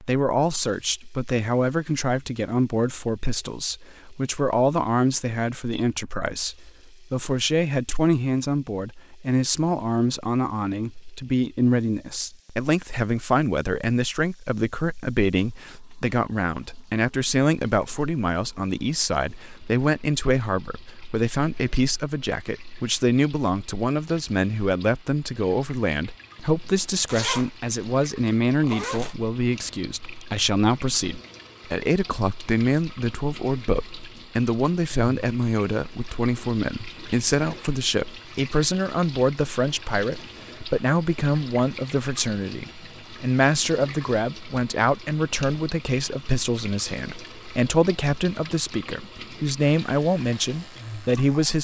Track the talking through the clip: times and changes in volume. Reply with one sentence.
The talking can be heard from 0.0 to 51.5 s, at a steady volume.